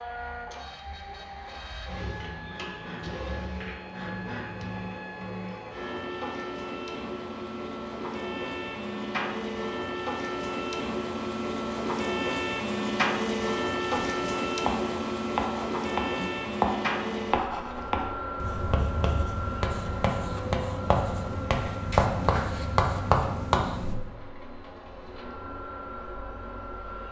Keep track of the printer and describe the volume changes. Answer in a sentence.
The loudness of the printer goes up, then down.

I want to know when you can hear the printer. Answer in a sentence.
The printer can be heard from 0.0 to 27.0 s.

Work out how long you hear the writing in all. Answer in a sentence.
The writing can be heard for 10 seconds in total.